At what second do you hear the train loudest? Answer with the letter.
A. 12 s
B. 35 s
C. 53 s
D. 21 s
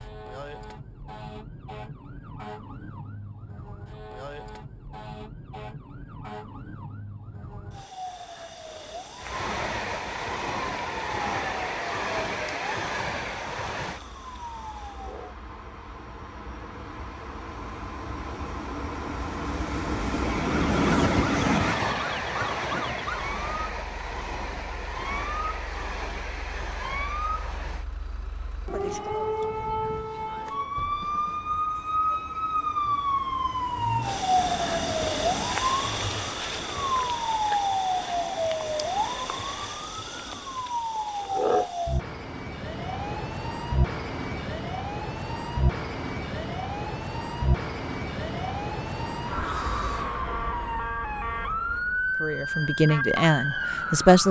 D.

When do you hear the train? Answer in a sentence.
The train can be heard from 9.2 to 39.9 s.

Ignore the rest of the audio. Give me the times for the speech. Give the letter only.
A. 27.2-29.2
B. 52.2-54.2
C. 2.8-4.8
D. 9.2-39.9
B.